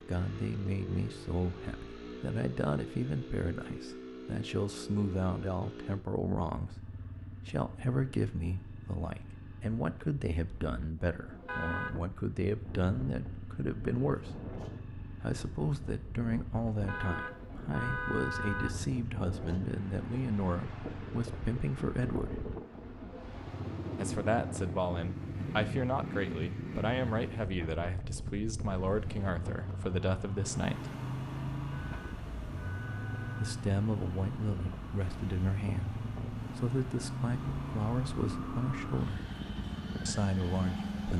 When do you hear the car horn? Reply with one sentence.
You can hear the car horn from 11.4 to 11.9 s, from 16.9 to 18.9 s and from 31.7 to 33.6 s.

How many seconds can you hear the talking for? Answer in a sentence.
The talking can be heard for 35 seconds in total.